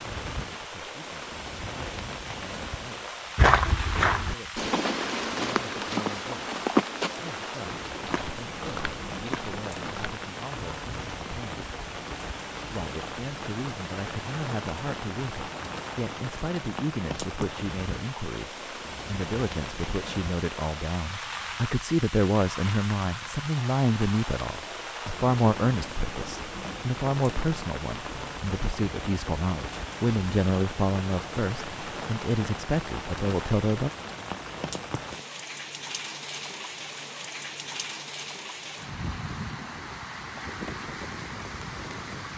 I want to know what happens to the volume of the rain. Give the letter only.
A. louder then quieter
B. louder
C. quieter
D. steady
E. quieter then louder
D.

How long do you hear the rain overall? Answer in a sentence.
You can hear the rain for 42 seconds altogether.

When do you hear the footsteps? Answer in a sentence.
The footsteps can be heard from 3.4 to 10.2 s.